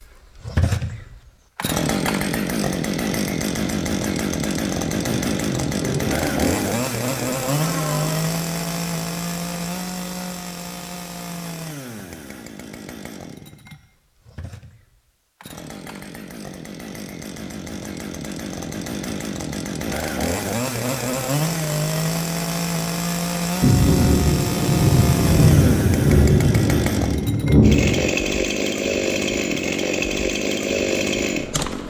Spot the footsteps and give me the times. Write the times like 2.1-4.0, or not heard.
not heard.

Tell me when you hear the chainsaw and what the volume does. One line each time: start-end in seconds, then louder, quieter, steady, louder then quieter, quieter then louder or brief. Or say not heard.
0.0-31.8 quieter then louder.